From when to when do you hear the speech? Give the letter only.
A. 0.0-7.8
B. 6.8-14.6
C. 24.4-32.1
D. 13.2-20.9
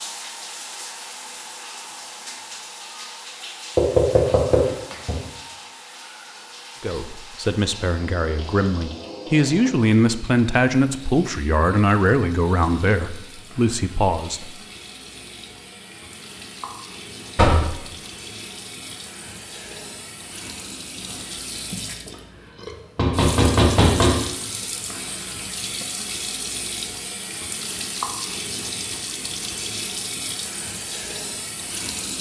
B.